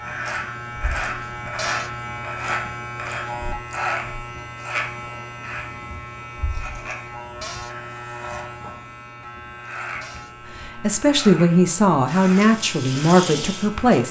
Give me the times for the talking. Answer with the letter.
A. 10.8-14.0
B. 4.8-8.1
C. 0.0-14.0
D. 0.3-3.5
A.